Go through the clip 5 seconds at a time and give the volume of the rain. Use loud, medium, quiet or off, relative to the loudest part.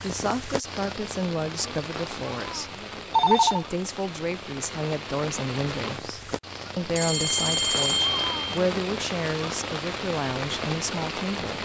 medium, loud, loud.